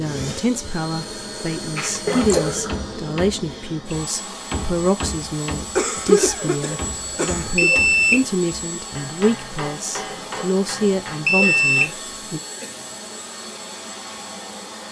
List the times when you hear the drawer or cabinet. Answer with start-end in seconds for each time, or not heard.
not heard.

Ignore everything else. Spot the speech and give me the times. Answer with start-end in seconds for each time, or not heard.
0.0-12.4.